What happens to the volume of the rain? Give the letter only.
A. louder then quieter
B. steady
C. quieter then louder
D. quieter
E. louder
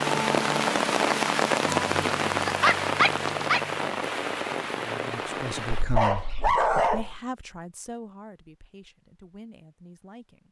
D.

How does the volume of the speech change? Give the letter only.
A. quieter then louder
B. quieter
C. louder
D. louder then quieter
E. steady
B.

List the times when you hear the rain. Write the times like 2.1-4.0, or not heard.
0.0-5.8.